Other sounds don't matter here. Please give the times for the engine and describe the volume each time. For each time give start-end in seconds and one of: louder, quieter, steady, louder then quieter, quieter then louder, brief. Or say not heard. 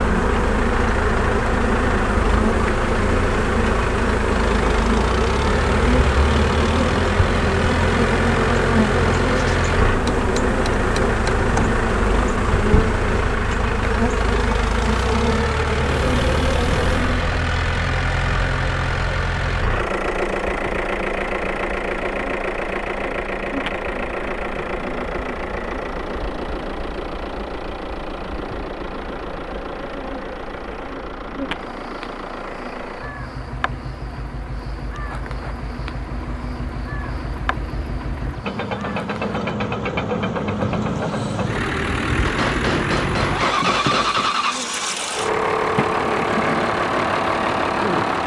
0.0-48.2 quieter then louder.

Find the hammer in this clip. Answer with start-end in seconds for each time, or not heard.
9.9-11.8, 42.2-44.4.